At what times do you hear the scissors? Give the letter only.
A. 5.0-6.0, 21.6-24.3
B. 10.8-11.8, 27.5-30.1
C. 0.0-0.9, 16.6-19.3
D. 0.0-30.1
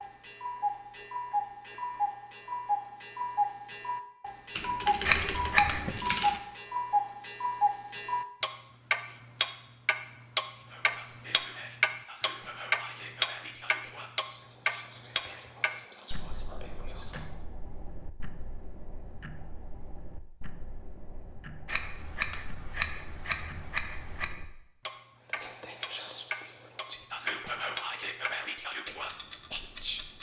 A.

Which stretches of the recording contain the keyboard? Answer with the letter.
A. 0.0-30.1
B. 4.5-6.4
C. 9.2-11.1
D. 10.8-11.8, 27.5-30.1
B.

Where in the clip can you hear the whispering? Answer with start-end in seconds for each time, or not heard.
10.6-17.4, 25.2-30.1.